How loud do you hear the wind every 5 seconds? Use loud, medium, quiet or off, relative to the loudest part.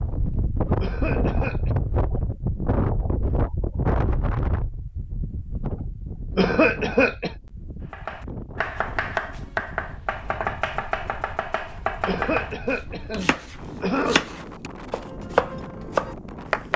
loud, medium, quiet, medium.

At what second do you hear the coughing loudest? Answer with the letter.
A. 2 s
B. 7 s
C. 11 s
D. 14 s
B.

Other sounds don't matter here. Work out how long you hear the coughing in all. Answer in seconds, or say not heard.
4 s.